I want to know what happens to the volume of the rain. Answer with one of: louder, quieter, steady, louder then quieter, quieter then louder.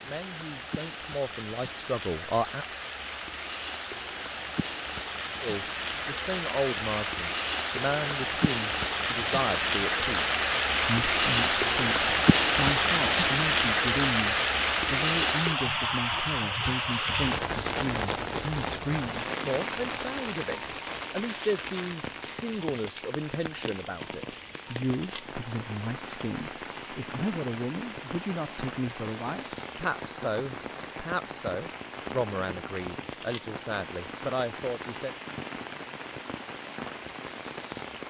louder then quieter.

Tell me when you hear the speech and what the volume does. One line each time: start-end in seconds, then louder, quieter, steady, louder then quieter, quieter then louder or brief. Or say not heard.
0.0-2.6 brief
5.4-35.1 steady.